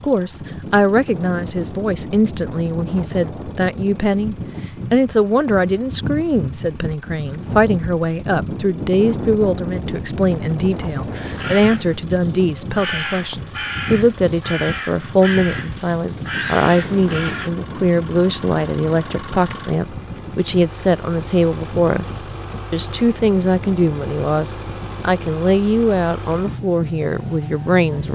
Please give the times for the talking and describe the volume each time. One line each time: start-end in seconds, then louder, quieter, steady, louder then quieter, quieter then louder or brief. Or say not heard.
0.0-28.1 steady.